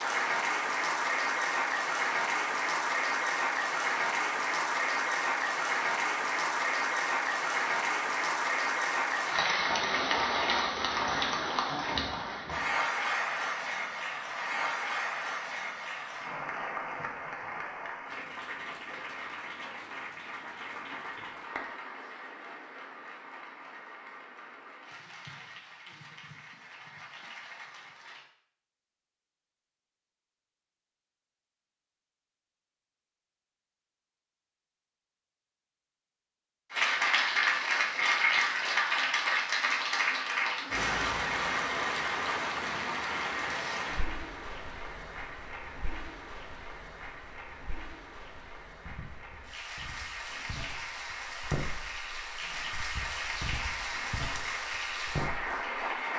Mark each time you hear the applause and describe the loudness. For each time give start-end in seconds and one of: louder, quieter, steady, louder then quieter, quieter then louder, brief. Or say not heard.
0.0-28.2 quieter
36.7-56.1 quieter then louder.